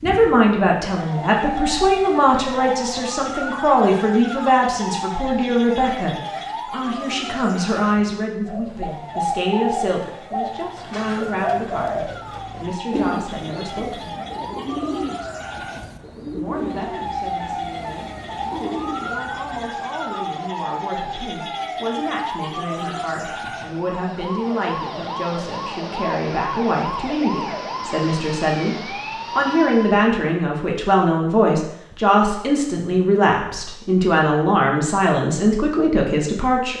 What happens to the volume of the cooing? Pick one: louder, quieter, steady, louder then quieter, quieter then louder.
quieter.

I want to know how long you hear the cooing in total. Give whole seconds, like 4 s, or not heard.
11 s.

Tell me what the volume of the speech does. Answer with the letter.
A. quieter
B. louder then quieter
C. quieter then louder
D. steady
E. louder
C.